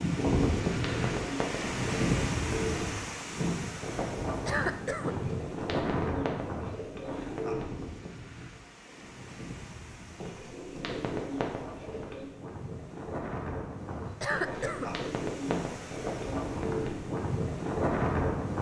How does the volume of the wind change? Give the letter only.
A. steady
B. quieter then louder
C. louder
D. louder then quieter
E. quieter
B.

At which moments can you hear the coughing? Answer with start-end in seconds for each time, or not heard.
4.5-5.2, 14.2-14.9.